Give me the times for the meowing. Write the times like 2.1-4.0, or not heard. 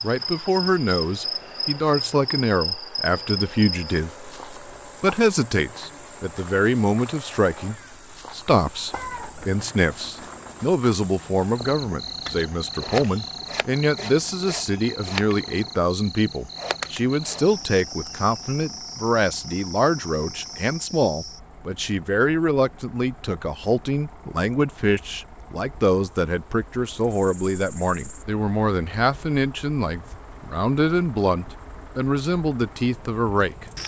8.9-9.6.